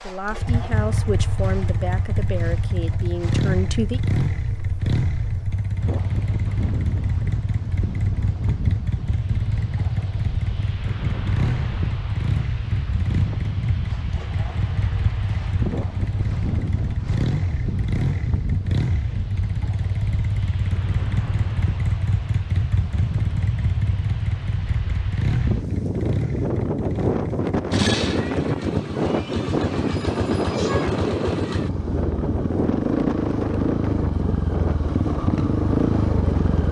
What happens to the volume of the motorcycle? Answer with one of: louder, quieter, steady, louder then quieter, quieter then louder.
steady.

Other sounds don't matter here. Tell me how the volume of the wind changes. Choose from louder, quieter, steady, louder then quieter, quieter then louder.
louder.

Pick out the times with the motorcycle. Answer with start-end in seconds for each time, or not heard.
0.0-36.6.